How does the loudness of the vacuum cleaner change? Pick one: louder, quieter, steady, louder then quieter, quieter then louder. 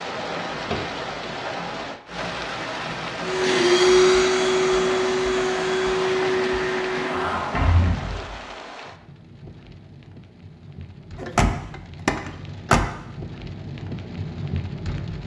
quieter.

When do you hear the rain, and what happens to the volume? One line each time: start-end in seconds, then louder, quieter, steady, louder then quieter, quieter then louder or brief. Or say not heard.
0.0-15.2 quieter then louder.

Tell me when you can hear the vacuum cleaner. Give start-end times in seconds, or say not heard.
3.2-7.8.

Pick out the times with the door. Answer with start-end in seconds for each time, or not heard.
0.5-1.4, 7.3-8.4, 11.2-12.8.